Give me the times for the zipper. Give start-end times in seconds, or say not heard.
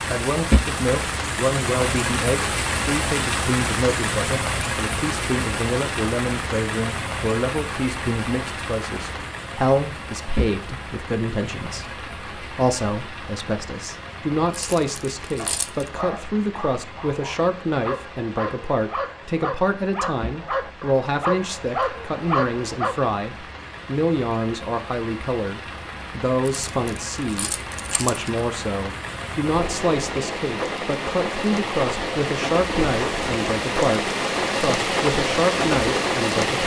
not heard.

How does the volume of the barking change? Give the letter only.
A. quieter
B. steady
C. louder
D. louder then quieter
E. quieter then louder
C.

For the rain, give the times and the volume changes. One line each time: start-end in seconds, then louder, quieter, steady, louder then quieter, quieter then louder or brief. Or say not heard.
0.0-36.6 quieter then louder.